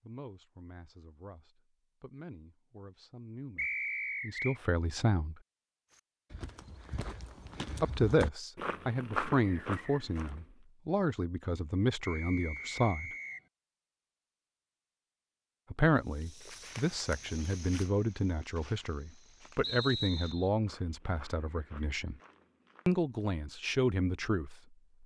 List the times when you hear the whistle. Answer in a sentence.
You can hear the whistle from 3.5 to 4.6 s, from 12.0 to 13.4 s and from 19.6 to 20.5 s.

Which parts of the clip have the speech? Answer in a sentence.
You can hear the speech from 0.0 to 5.3 s, from 7.8 to 13.1 s, from 15.7 to 22.1 s and from 22.9 to 24.6 s.